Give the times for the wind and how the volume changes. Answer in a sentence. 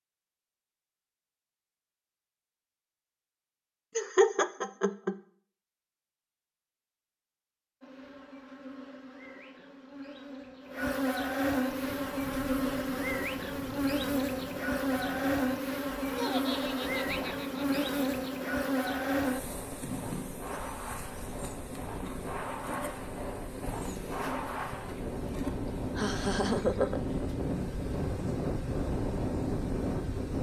You can hear the wind from 11.7 to 30.3 s, getting louder.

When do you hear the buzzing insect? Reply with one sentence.
You can hear the buzzing insect from 7.8 to 30.3 s.